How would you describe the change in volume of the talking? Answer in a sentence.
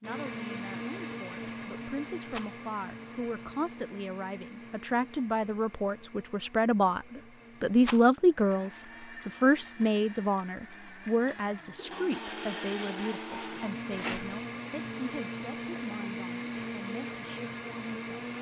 The volume of the talking goes up, then down.